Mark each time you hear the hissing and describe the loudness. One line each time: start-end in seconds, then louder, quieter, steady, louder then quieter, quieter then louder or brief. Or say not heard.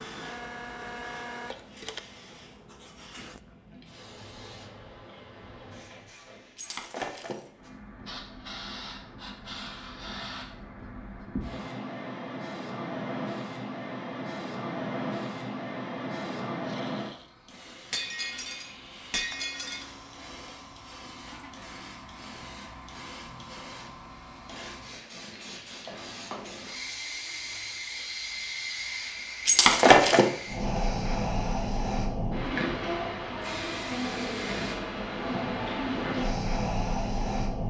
0.0-37.6 louder.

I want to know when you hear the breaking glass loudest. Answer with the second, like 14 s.
30 s.